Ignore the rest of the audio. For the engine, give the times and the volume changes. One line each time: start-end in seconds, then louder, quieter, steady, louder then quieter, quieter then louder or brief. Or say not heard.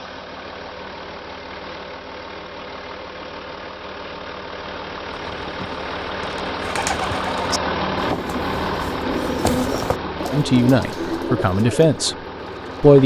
0.0-13.0 louder then quieter.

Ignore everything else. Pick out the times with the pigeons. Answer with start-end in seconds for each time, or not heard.
5.1-13.0.